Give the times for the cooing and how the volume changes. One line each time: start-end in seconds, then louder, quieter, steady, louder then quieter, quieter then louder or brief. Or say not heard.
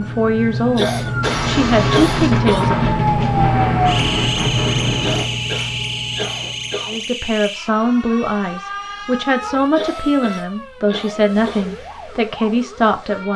not heard.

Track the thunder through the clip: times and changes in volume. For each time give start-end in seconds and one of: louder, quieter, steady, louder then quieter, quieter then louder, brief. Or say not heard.
1.2-5.2 steady.